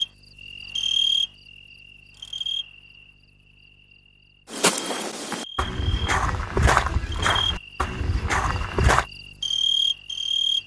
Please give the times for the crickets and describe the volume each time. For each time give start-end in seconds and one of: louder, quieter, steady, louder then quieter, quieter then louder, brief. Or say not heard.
0.0-10.6 quieter then louder.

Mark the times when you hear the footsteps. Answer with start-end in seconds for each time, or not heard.
4.5-9.1.